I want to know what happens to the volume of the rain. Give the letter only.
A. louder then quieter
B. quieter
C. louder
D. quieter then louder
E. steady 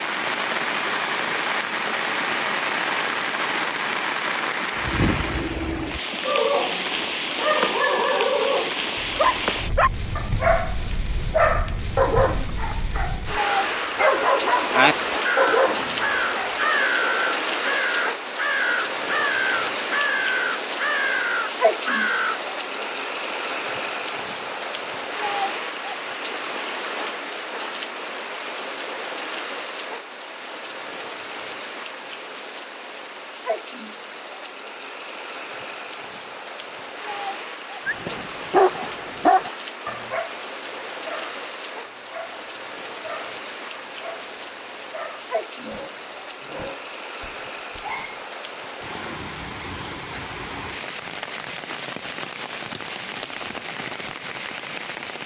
B.